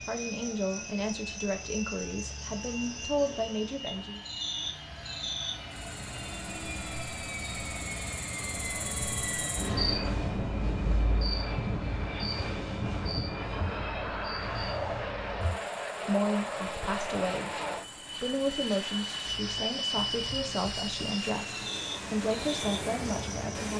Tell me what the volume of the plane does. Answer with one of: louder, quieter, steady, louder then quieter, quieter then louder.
louder.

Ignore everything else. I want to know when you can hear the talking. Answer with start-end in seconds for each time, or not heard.
0.0-4.2, 15.4-23.7.